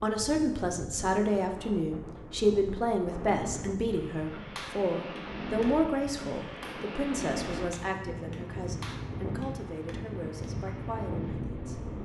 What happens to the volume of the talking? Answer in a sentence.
The loudness of the talking goes down.